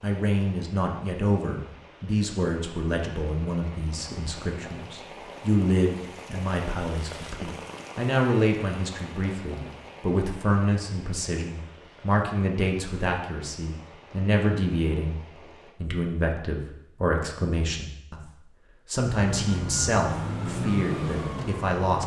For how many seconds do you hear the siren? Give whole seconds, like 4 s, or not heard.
3 s.